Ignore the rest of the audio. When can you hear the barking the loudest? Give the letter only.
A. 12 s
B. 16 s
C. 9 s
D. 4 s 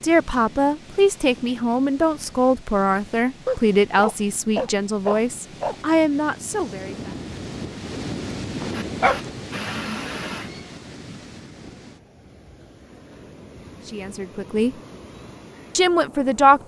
C.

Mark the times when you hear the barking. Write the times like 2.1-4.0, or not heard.
3.5-5.8, 8.6-10.4.